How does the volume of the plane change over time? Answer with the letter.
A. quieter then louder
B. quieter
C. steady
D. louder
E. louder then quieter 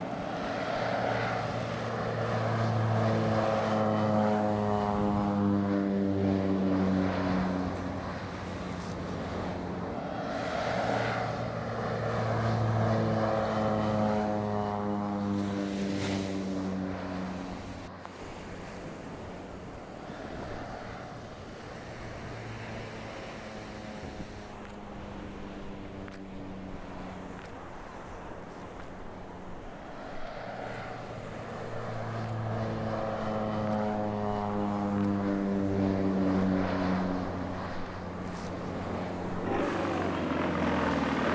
A.